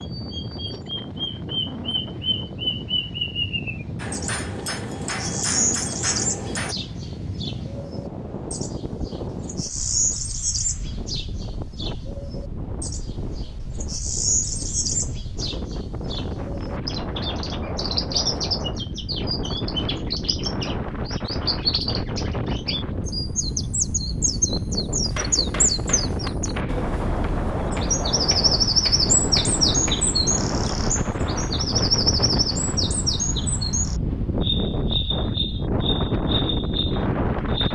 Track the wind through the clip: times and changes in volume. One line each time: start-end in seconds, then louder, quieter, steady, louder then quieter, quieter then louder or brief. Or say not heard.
0.0-37.6 louder.